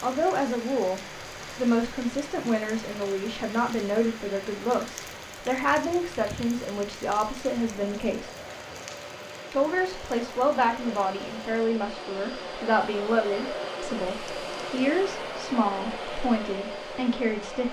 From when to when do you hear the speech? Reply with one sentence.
The speech can be heard from 0.0 to 8.3 s and from 9.5 to 17.6 s.